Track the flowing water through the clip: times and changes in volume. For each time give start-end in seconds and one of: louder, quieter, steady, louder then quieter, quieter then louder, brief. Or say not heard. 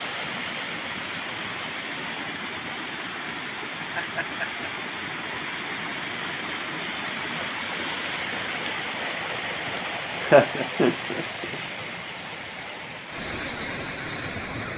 0.0-14.7 steady.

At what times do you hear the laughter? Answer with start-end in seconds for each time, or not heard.
3.8-4.7, 10.2-11.6.